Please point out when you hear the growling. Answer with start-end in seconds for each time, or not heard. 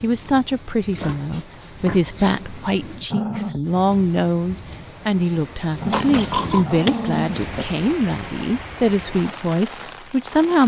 3.0-3.6, 5.8-7.3.